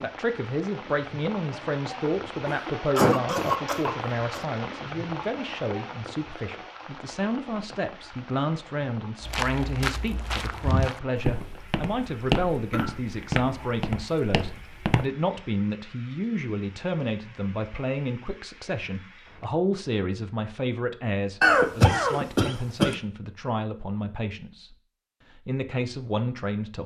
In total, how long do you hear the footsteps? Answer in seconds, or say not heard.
6 s.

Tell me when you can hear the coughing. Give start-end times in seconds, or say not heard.
2.5-4.5, 12.7-13.8, 21.4-22.9.